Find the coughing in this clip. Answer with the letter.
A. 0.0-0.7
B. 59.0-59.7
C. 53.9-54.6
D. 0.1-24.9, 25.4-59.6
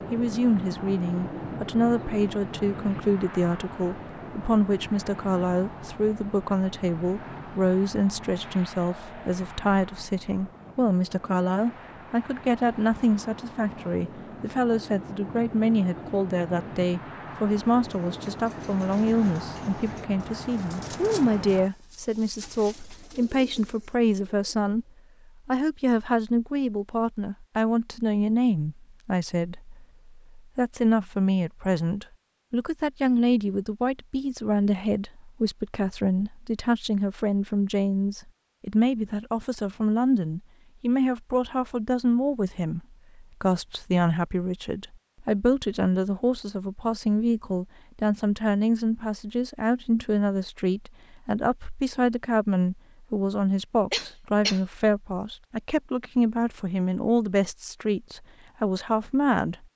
C.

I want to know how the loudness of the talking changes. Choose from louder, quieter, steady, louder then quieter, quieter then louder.
steady.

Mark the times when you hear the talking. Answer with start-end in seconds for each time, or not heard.
0.1-24.9, 25.4-59.6.